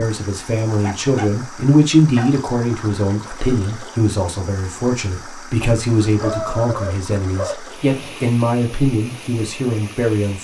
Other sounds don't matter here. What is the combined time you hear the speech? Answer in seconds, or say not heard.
10 s.